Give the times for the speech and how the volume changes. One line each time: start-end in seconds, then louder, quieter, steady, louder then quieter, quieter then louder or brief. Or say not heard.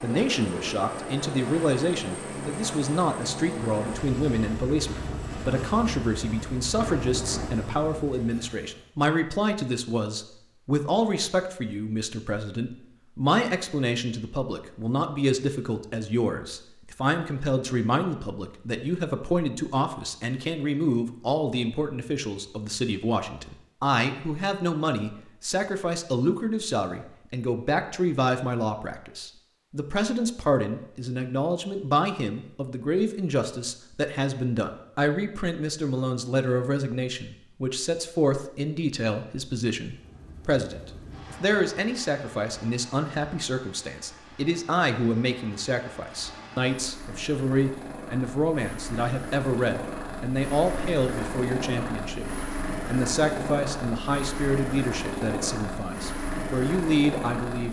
0.0-57.6 steady.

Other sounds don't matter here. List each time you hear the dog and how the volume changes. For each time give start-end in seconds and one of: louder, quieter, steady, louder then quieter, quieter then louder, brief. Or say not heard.
not heard.